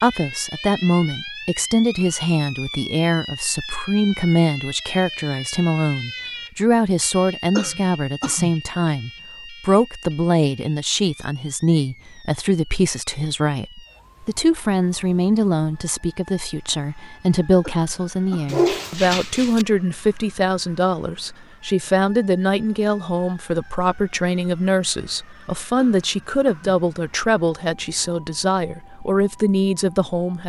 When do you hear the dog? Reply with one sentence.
You can hear the dog from 18.4 to 19.6 s.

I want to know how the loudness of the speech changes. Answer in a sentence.
The volume of the speech stays about the same.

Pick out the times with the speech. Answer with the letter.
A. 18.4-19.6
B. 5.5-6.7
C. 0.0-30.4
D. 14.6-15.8
C.